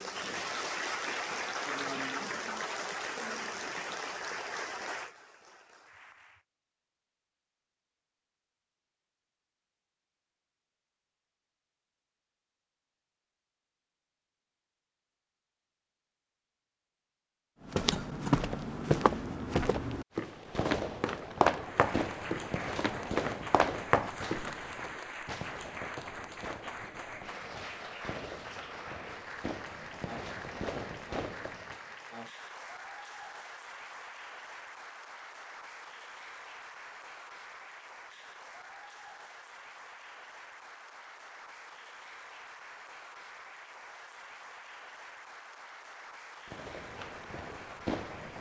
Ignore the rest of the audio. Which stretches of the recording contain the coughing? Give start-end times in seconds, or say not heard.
17.9-18.4.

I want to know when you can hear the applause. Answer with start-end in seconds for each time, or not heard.
0.0-6.5, 21.6-48.3.